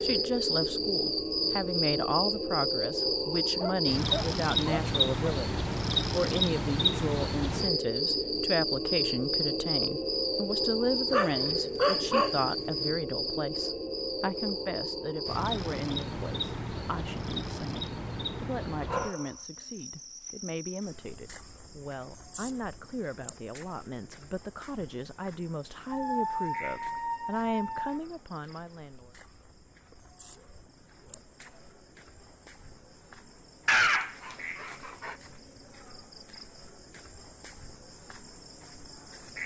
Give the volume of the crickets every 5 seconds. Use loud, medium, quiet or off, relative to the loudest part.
loud, loud, loud, medium, quiet, quiet, quiet, quiet.